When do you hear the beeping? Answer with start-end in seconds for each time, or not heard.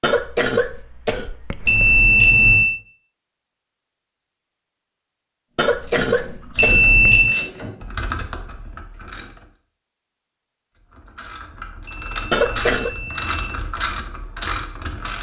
1.6-2.7, 6.5-7.3, 11.8-13.6.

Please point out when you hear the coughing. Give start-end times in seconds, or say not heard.
0.0-2.0, 5.5-7.2, 12.3-12.9.